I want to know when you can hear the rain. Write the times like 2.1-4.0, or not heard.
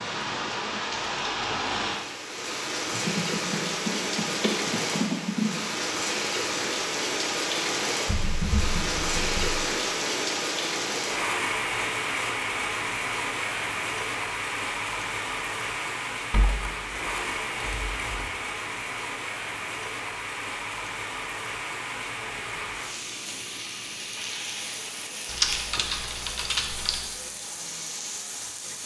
0.0-28.8.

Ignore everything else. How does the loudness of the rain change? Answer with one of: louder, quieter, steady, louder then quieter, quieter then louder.
quieter.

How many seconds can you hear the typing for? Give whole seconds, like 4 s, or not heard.
8 s.